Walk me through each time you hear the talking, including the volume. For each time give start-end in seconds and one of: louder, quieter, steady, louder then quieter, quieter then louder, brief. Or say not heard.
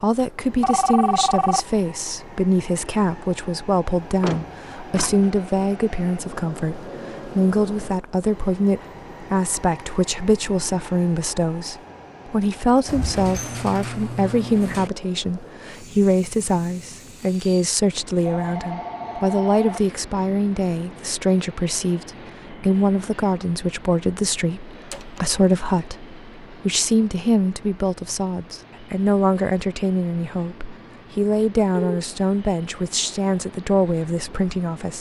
0.0-34.9 steady.